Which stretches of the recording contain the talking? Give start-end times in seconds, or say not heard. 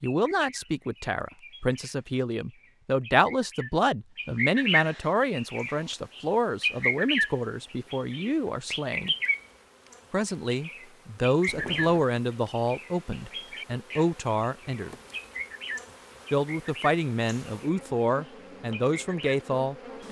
0.0-9.2, 10.1-14.9, 16.3-20.0.